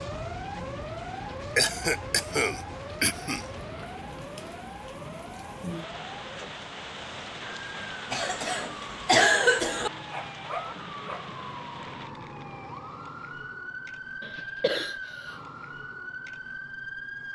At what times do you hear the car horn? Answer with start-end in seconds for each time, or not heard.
not heard.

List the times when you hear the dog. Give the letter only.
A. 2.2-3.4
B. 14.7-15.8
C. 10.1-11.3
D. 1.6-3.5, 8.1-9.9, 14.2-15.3
C.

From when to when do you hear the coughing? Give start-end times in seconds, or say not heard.
1.6-3.5, 8.1-9.9, 14.2-15.3.